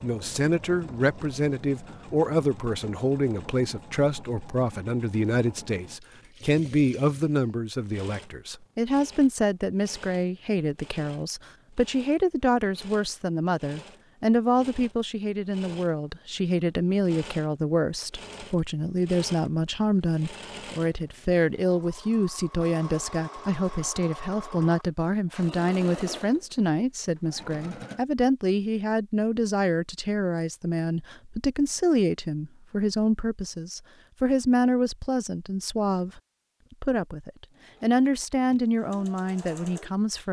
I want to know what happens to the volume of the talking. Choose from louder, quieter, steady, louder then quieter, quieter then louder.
steady.